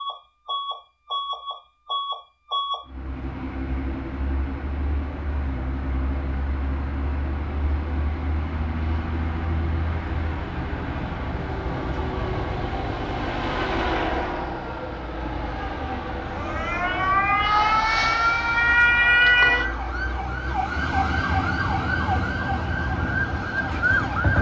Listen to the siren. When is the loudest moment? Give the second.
19 s.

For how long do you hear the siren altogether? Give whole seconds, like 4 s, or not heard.
8 s.